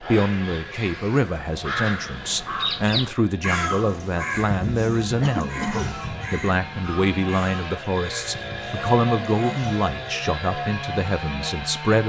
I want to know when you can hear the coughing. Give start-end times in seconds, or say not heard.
5.2-6.0.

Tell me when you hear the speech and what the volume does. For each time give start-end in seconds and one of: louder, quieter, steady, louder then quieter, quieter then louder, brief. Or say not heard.
0.0-12.0 steady.